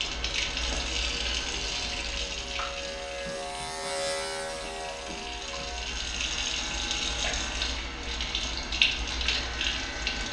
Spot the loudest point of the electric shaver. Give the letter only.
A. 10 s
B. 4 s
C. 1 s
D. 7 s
B.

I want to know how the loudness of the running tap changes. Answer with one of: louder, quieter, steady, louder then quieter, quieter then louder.
quieter then louder.